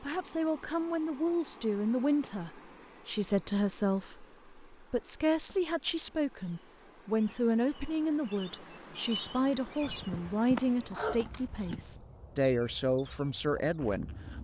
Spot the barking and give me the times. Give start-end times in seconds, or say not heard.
9.8-11.9.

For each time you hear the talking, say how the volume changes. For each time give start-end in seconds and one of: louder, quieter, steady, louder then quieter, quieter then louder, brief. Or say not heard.
0.0-14.4 steady.